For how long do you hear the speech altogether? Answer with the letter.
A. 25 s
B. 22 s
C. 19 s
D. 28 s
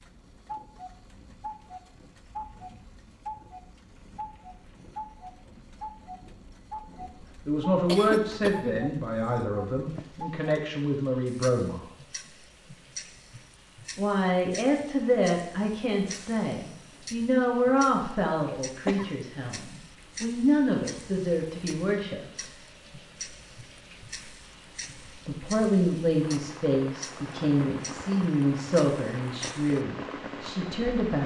C.